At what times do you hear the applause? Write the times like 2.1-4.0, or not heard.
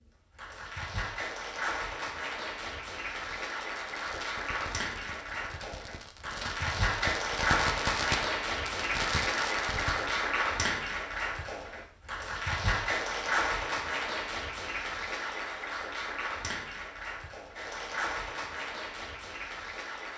0.1-20.1.